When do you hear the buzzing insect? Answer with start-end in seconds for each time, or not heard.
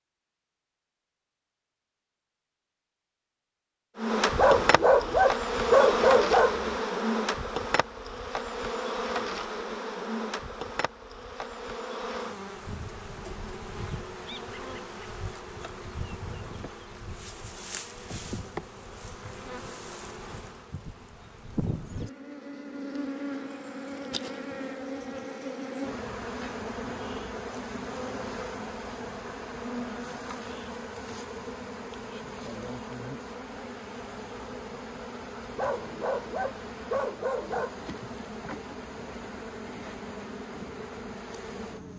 4.0-41.9.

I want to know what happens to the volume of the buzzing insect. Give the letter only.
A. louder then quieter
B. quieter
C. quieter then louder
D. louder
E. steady
B.